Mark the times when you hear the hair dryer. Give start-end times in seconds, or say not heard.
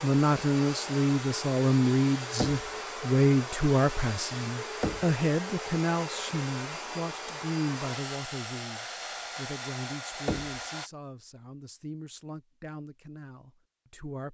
0.0-10.9.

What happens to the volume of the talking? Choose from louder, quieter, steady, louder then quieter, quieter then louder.
quieter.